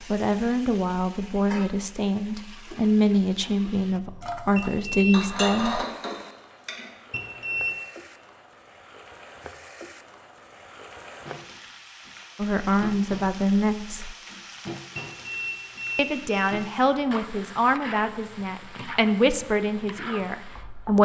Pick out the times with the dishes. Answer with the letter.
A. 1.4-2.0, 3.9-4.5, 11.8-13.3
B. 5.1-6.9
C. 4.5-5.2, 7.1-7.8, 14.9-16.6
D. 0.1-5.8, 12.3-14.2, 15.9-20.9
B.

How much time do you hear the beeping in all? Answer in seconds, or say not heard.
3 s.